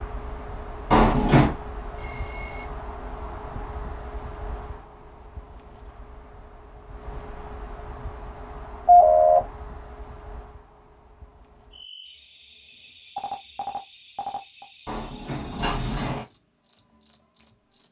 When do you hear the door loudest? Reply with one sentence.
The loudest moment of the door is at 1 second.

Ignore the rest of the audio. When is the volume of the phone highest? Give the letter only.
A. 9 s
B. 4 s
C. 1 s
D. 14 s
A.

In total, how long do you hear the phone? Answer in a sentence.
You can hear the phone for 3 seconds altogether.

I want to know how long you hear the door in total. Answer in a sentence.
You can hear the door for 2 seconds altogether.